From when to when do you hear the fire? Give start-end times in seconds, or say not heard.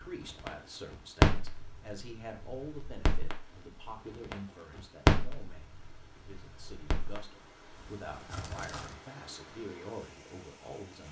0.0-8.9.